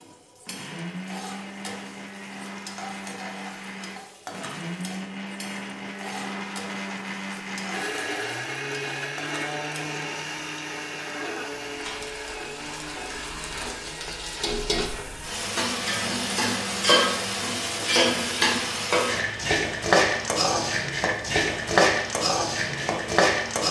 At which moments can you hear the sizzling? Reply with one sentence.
You can hear the sizzling from 0.0 to 23.6 s.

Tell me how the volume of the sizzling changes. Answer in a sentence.
The loudness of the sizzling goes up.